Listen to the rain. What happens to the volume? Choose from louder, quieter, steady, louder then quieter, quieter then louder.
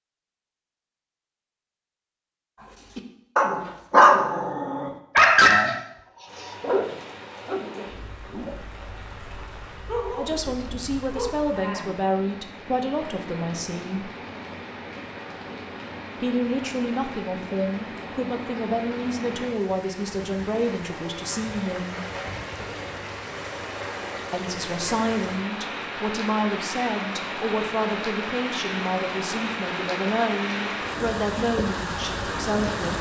louder.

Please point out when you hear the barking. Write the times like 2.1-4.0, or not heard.
3.0-11.3.